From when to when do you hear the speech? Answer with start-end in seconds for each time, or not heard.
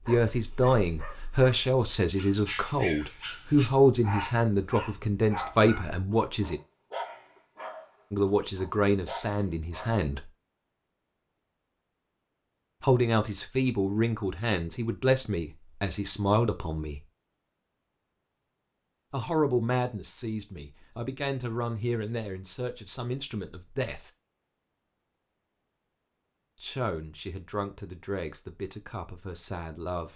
0.1-6.6, 8.1-10.3, 12.8-17.0, 19.1-24.1, 26.6-30.1.